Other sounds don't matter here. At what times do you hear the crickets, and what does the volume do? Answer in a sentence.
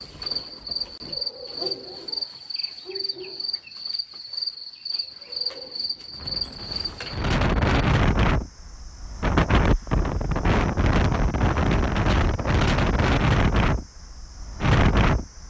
You can hear the crickets from 0.0 to 15.4 s, getting quieter.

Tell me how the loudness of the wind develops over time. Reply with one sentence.
The loudness of the wind stays about the same.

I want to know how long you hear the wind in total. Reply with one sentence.
The wind can be heard for 9 seconds in total.